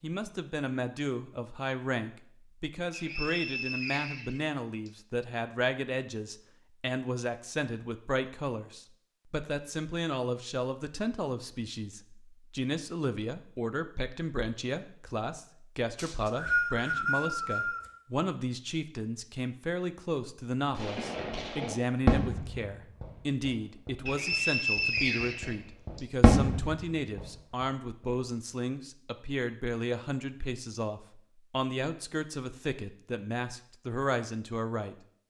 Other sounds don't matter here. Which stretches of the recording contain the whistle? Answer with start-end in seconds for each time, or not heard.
2.9-4.9, 15.9-17.9, 24.1-26.0.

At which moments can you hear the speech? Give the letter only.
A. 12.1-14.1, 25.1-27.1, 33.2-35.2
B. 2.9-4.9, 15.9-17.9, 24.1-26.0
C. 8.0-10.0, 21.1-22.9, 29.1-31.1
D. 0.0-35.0
D.